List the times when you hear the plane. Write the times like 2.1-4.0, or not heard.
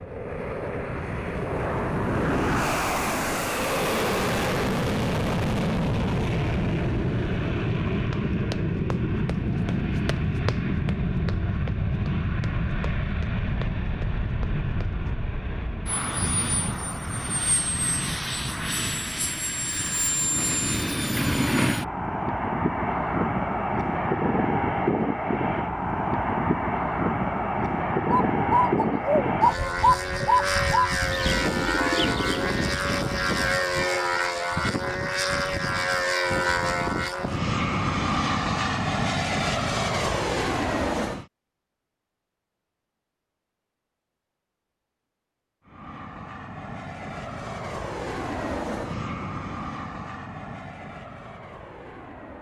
0.0-41.2, 45.6-52.3.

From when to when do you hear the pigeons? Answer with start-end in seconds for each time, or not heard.
28.1-33.6.